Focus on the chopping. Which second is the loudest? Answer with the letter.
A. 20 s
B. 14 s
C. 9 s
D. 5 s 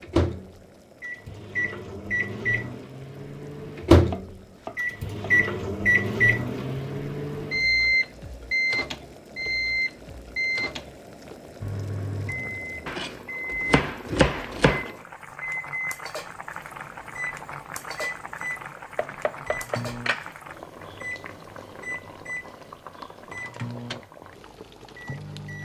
B.